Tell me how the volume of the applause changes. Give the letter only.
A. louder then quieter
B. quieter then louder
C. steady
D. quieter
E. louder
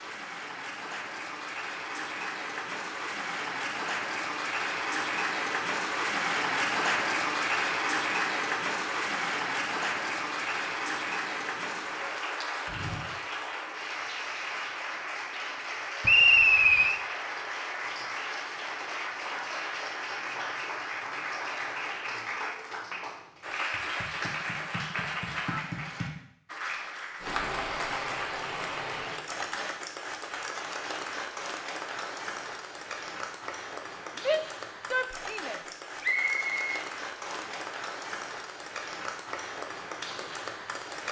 D.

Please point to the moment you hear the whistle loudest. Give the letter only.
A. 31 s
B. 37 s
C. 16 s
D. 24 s
C.